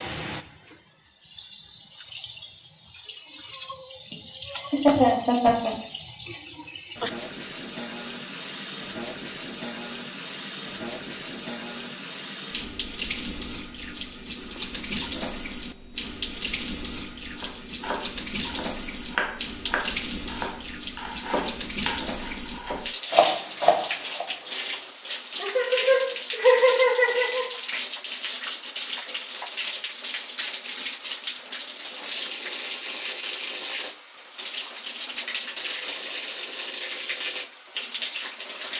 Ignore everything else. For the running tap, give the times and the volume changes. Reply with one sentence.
You can hear the running tap from 0.0 to 38.7 s, at a steady volume.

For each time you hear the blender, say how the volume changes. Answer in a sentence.
The blender can't be heard in this clip.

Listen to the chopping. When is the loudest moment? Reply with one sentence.
The loudest moment of the chopping is at 23 seconds.